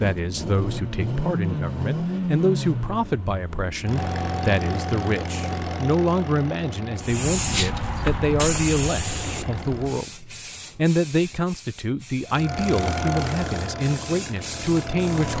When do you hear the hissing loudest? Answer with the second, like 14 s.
8 s.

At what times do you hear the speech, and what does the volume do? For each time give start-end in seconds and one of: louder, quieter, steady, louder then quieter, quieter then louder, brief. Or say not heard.
0.0-15.3 steady.